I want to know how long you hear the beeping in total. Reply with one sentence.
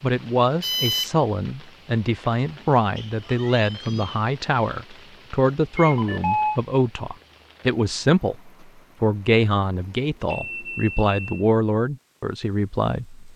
You can hear the beeping for 3 seconds altogether.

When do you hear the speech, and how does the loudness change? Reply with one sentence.
The speech can be heard from 0.0 to 13.3 s, at a steady volume.